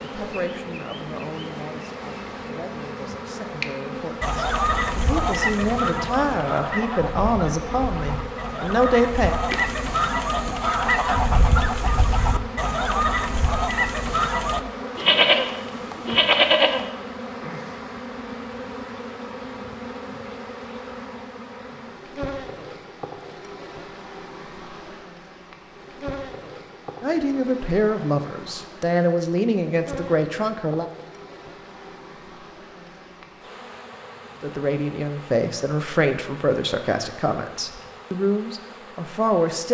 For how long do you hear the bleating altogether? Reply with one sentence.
You can hear the bleating for 2 seconds altogether.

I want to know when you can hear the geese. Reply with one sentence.
You can hear the geese from 4.2 to 14.6 s.